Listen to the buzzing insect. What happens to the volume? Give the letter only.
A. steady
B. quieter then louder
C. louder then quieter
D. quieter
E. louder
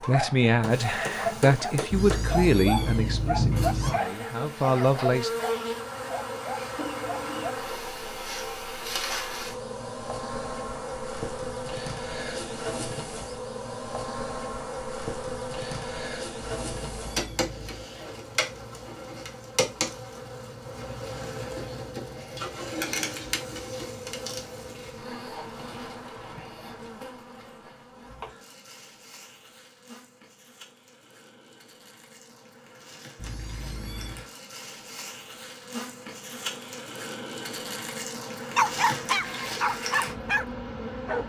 B.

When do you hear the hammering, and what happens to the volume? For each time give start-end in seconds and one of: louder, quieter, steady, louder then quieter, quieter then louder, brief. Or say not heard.
not heard.